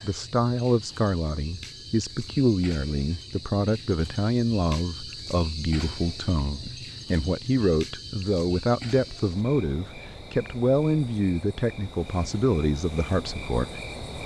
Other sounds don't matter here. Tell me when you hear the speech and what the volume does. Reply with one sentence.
The speech can be heard from 0.0 to 13.8 s, at a steady volume.